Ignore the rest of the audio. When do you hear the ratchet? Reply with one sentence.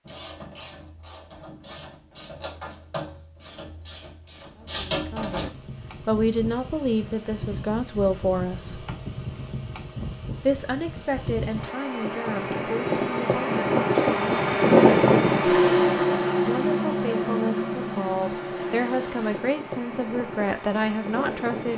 The ratchet can be heard from 0.1 to 5.5 s.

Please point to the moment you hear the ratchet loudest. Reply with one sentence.
The loudest moment of the ratchet is at 5 seconds.